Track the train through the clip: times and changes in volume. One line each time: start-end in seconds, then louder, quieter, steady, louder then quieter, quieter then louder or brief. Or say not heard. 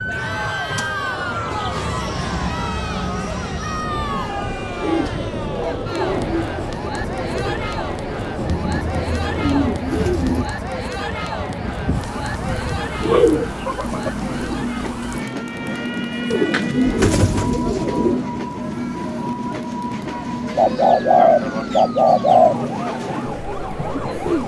0.0-24.4 steady.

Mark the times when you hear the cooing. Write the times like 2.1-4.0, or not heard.
0.6-2.0, 4.8-6.5, 8.7-10.5, 13.0-14.1, 16.3-18.2, 20.6-22.6.